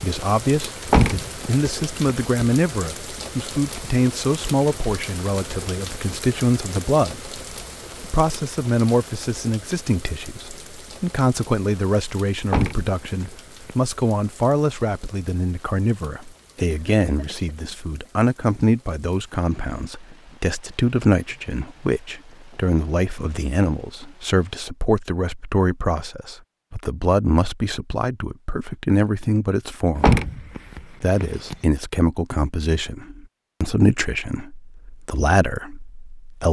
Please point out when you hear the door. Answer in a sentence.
The door can be heard from 0.8 to 2.5 s, from 12.4 to 13.8 s and from 29.9 to 31.6 s.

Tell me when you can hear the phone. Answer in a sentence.
You can't hear the phone here.